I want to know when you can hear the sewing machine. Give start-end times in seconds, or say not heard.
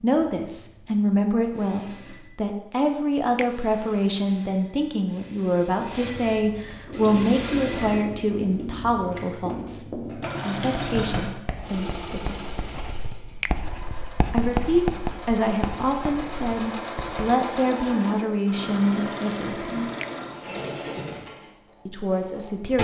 0.0-22.8.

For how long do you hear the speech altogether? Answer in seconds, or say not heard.
19 s.